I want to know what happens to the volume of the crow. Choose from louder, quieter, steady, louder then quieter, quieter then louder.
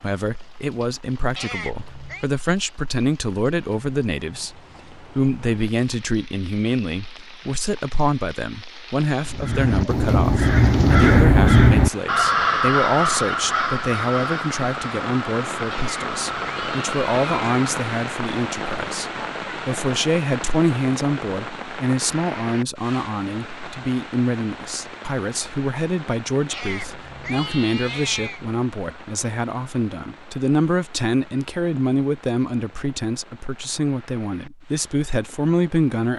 quieter.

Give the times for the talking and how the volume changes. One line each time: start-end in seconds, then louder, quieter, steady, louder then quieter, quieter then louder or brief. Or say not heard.
0.0-36.1 steady.